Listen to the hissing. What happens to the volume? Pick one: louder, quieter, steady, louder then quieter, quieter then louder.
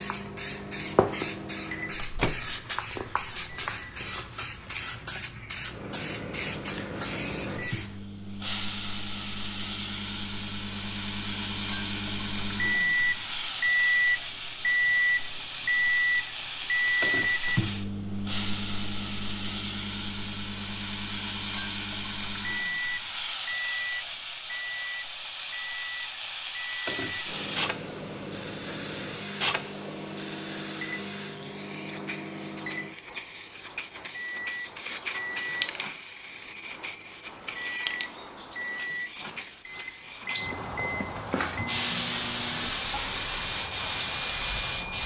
steady.